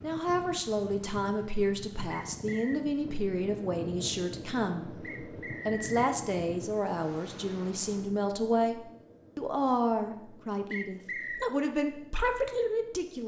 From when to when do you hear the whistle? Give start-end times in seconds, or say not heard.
2.1-2.8, 5.0-6.1, 10.7-11.5.